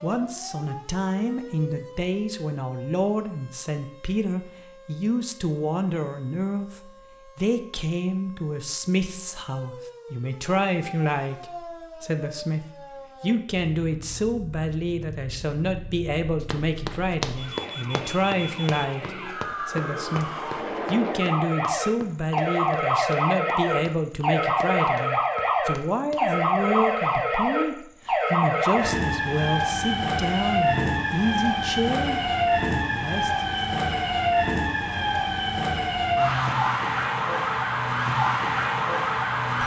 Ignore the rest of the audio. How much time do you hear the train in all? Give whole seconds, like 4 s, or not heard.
not heard.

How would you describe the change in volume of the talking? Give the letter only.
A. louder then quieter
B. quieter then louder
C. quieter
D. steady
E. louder
D.